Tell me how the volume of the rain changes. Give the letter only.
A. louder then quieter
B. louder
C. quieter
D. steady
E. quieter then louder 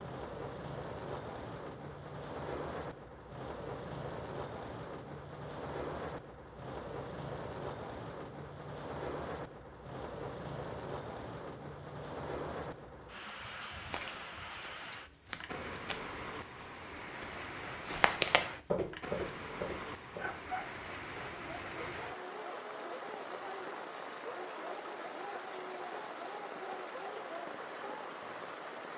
D.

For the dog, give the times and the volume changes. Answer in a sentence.
The dog can be heard from 20.1 to 28.1 s, at a steady volume.